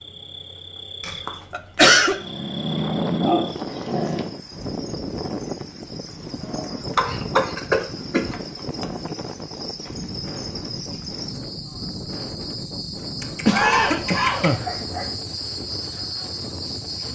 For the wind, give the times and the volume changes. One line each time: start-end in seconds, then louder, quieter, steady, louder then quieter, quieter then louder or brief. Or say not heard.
2.5-17.0 quieter.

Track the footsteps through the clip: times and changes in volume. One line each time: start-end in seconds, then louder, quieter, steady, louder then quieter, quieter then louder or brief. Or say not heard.
not heard.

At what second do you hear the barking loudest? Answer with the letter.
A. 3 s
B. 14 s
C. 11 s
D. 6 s
A.